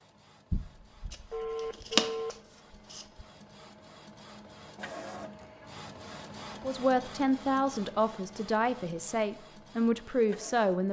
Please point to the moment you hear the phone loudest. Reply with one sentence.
The loudest moment of the phone is at 2 seconds.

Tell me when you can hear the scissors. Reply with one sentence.
The scissors can be heard from 1.1 to 3.0 s.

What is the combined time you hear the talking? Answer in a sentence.
You can hear the talking for 4 seconds altogether.